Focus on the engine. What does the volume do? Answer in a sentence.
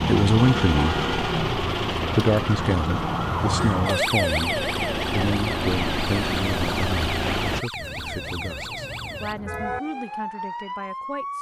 The loudness of the engine goes down, then up.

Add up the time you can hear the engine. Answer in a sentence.
The engine can be heard for 8 seconds in total.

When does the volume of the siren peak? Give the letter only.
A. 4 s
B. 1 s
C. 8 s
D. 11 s
A.